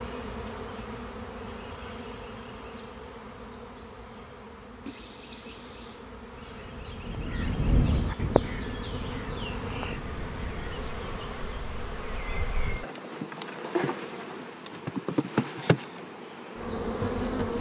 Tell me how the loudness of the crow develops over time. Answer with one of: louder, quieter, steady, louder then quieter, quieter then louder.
louder then quieter.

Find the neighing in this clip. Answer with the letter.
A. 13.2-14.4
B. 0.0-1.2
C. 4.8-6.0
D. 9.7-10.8
C.